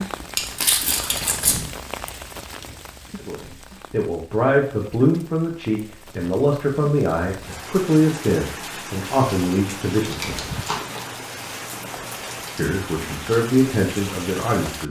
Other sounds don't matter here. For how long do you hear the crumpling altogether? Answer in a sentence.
You can hear the crumpling for 3 seconds altogether.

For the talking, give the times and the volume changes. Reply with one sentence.
The talking can be heard from 3.2 to 10.4 s, at a steady volume; and briefly from 12.6 to 14.8 s.